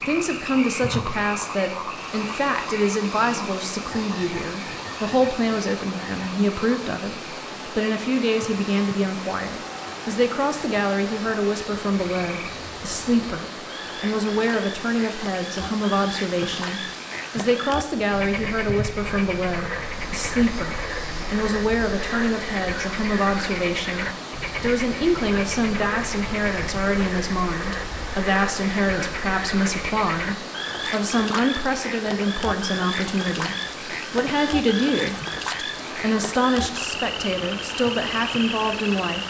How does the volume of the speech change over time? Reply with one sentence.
The volume of the speech stays about the same.